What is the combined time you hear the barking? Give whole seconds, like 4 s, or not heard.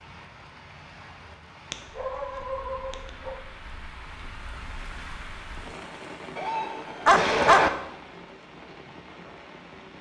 3 s.